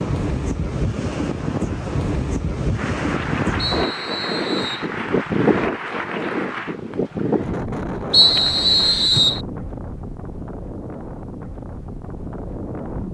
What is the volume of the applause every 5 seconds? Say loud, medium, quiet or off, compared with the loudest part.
loud, loud, off.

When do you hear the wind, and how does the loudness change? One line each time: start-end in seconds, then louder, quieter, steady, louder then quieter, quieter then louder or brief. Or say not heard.
0.0-13.0 quieter.